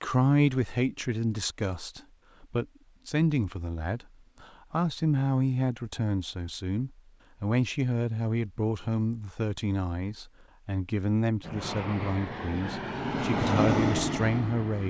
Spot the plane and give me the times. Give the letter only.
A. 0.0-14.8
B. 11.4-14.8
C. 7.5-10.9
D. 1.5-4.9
B.